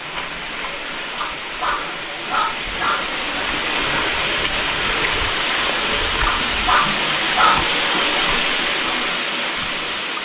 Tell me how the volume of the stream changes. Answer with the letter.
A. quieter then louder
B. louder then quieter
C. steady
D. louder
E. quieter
D.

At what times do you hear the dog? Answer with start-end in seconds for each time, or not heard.
1.2-3.1, 6.2-7.7.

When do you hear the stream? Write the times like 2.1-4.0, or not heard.
0.0-10.1.